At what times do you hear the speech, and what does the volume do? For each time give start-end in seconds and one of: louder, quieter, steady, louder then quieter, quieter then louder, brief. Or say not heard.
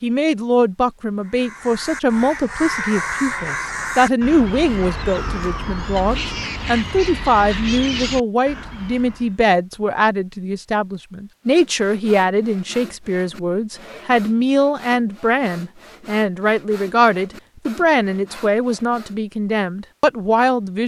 0.0-20.8 steady.